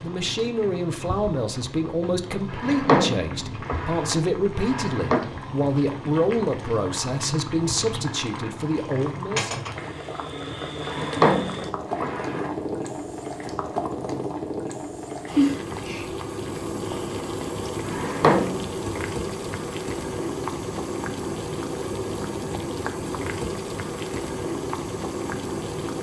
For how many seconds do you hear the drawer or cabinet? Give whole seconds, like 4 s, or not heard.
5 s.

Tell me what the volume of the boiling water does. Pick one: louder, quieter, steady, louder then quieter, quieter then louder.
louder.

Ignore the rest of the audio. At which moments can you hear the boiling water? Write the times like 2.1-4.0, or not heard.
0.0-25.9.